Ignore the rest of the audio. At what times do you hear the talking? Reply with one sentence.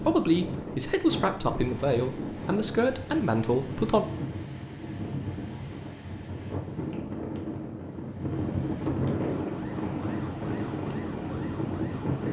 You can hear the talking from 0.0 to 4.0 s.